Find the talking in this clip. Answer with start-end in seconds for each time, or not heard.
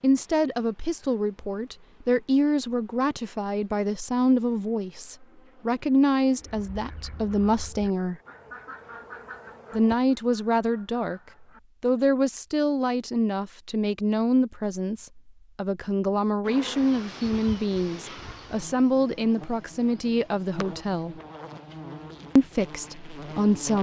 0.0-8.2, 9.7-11.2, 11.8-21.1, 22.4-23.7.